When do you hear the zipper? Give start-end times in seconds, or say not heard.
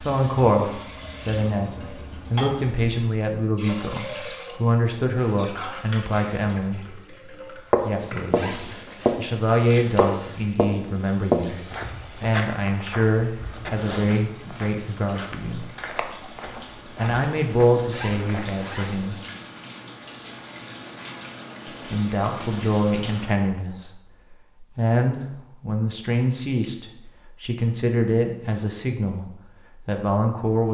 8.3-9.2, 17.9-19.4.